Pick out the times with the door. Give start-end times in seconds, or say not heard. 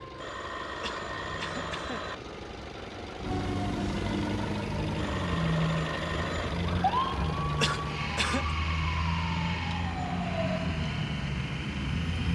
not heard.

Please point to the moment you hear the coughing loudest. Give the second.
8 s.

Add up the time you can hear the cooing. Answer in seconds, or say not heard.
not heard.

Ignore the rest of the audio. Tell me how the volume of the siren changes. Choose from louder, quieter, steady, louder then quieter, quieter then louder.
louder.